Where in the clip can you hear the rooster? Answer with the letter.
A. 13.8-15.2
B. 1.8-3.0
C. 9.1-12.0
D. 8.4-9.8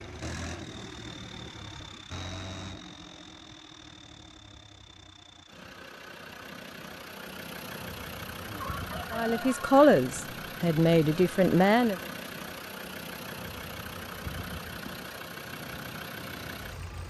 D.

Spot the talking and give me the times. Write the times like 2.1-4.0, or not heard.
9.1-12.0.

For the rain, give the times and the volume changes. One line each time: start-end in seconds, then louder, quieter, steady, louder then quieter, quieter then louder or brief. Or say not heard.
not heard.